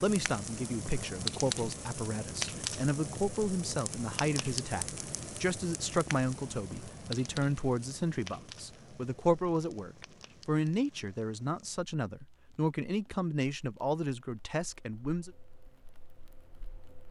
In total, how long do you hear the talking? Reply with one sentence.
You can hear the talking for 15 seconds altogether.